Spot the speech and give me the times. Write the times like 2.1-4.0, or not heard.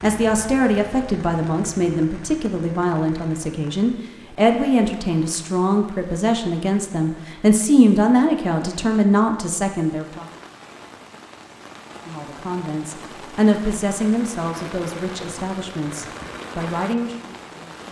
0.0-10.2, 12.1-17.8.